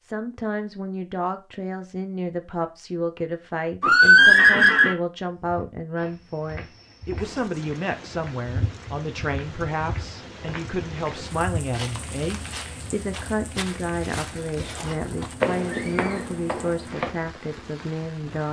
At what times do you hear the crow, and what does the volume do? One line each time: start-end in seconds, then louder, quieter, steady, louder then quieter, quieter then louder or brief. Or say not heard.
not heard.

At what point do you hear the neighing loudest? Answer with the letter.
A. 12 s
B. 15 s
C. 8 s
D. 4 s
D.